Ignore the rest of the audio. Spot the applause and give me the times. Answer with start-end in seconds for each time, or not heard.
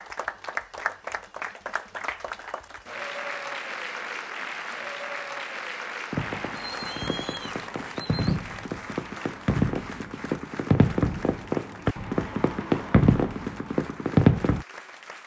0.0-15.2.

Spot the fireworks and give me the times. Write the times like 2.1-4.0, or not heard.
6.1-14.7.